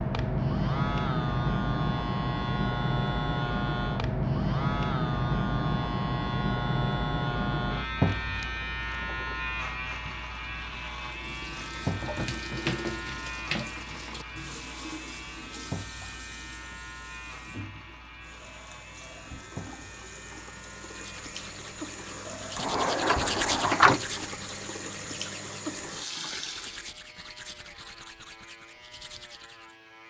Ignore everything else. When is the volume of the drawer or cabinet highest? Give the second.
24 s.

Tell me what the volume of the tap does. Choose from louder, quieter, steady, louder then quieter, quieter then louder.
quieter then louder.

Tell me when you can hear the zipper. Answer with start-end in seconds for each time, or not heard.
not heard.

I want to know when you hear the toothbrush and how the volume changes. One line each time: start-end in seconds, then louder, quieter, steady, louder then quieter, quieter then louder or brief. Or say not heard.
20.9-29.8 louder then quieter.